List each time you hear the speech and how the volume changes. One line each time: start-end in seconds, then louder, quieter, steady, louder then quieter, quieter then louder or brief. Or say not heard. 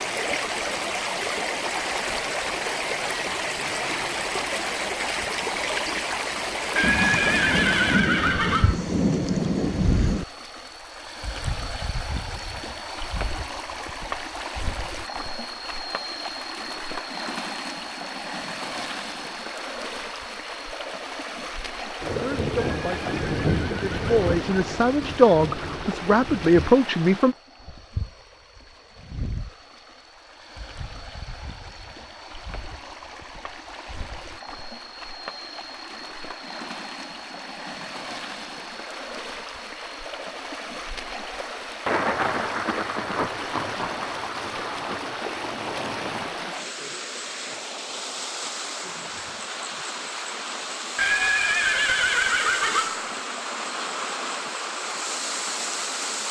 22.1-27.4 louder.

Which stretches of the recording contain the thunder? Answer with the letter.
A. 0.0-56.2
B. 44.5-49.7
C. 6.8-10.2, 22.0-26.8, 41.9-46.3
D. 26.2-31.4
C.